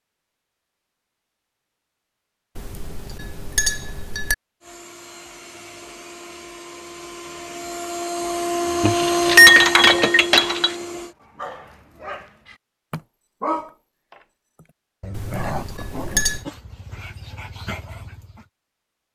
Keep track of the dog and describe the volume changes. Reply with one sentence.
The loudness of the dog goes up, then down.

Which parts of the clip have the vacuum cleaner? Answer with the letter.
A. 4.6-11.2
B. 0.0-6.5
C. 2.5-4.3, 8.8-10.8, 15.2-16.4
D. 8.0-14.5
A.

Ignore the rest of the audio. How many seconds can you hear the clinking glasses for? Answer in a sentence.
The clinking glasses can be heard for 5 seconds in total.